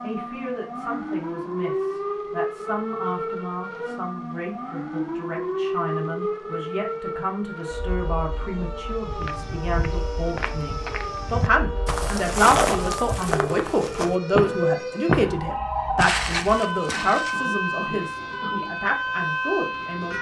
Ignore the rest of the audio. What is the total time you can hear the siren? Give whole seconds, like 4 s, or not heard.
20 s.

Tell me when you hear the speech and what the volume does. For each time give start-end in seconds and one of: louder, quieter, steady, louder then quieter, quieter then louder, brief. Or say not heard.
0.0-20.1 louder.